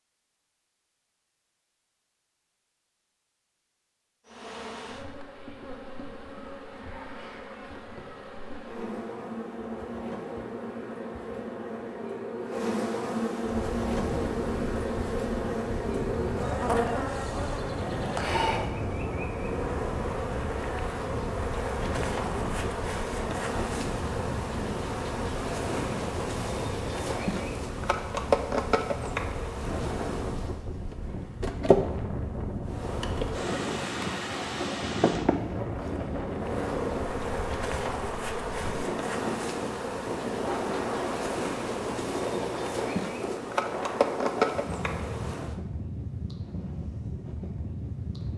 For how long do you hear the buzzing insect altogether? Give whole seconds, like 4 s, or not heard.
41 s.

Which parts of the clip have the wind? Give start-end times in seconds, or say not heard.
13.4-48.3.